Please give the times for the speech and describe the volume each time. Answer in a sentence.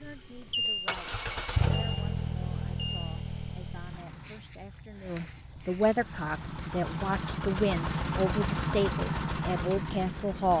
The speech can be heard from 0.0 to 10.5 s, getting louder.